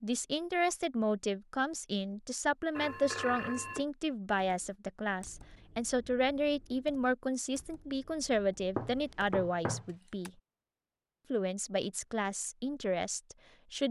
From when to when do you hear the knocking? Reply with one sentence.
The knocking can be heard from 8.8 to 9.9 s.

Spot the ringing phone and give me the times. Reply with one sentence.
The ringing phone can be heard from 2.8 to 3.9 s.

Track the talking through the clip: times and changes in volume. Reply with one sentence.
The talking can be heard from 0.0 to 10.3 s, at a steady volume; and briefly from 11.3 to 13.8 s.